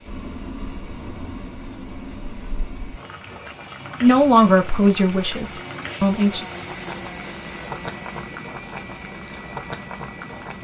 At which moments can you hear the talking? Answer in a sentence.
The talking can be heard from 4.0 to 6.5 s.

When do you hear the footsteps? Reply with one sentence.
You can't hear the footsteps here.